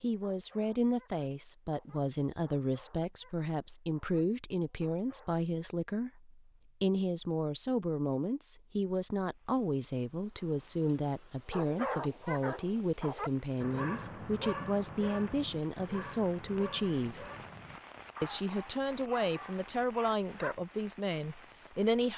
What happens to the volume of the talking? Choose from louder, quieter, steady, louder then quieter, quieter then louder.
steady.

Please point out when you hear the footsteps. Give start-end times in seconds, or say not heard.
not heard.